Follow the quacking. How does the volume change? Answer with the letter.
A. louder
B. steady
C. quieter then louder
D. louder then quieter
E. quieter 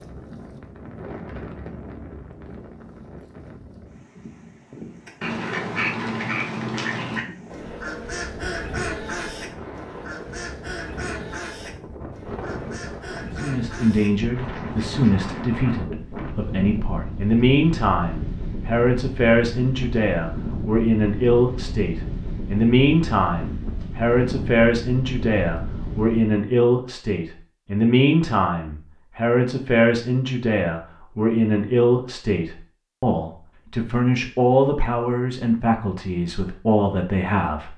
E.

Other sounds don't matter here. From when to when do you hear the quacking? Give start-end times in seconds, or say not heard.
5.0-15.3.